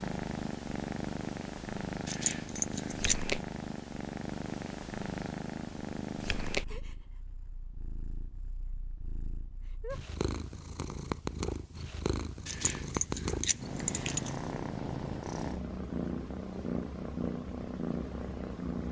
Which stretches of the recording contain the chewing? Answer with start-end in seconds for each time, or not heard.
not heard.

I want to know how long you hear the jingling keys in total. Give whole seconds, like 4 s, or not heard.
3 s.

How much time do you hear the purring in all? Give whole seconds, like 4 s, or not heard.
19 s.